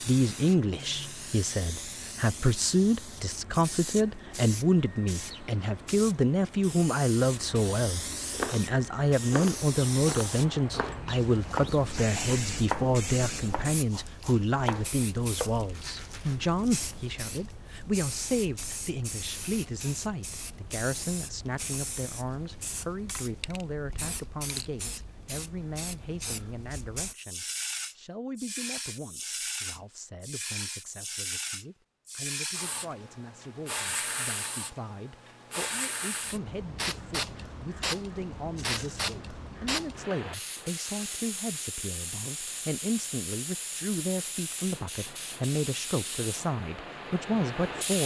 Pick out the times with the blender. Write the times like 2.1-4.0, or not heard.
not heard.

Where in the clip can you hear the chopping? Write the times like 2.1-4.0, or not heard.
8.3-15.7.